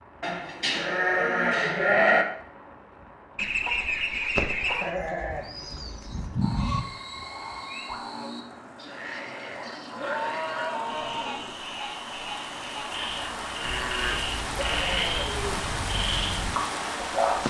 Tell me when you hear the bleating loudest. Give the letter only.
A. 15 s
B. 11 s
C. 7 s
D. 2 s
D.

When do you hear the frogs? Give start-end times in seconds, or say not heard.
6.0-17.4.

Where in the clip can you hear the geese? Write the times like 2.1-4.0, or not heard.
3.4-4.9.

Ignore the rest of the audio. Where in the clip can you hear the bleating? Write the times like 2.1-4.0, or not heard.
0.2-2.2, 4.8-6.8, 9.9-11.4, 13.6-15.7.